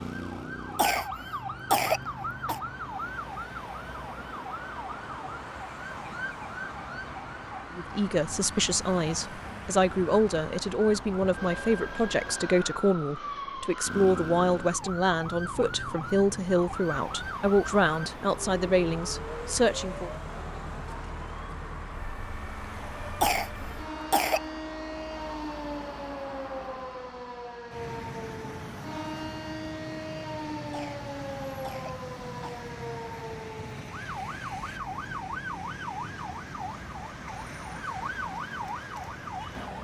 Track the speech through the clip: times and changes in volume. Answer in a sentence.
The speech can be heard from 7.8 to 20.1 s, at a steady volume.